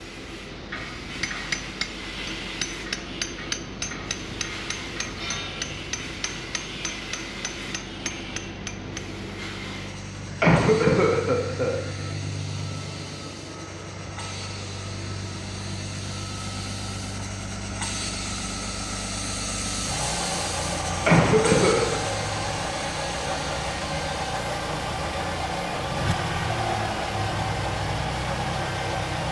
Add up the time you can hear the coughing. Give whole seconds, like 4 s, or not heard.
2 s.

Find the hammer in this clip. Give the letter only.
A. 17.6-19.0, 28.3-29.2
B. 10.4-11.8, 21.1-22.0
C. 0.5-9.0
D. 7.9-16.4
C.